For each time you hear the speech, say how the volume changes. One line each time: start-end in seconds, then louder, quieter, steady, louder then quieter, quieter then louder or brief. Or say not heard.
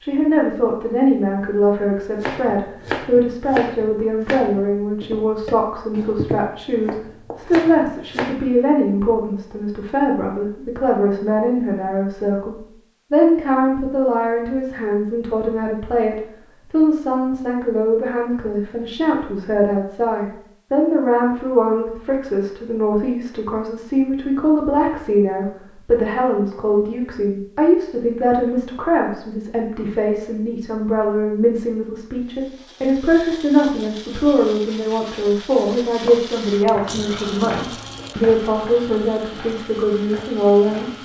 0.0-40.9 steady.